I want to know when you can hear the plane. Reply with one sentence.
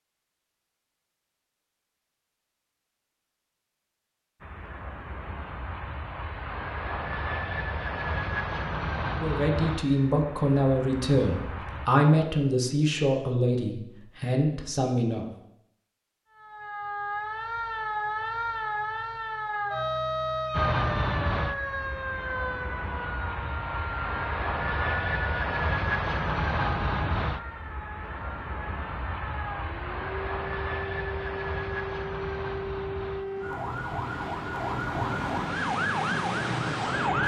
The plane can be heard from 4.4 to 11.9 s and from 20.5 to 37.2 s.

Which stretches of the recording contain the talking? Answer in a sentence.
The talking can be heard from 9.1 to 15.3 s.